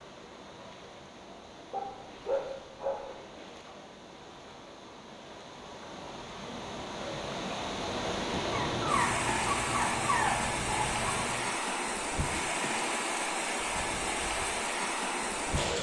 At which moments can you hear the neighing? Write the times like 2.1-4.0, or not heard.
not heard.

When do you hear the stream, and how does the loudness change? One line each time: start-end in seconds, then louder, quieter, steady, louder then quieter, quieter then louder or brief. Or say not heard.
0.0-15.7 louder.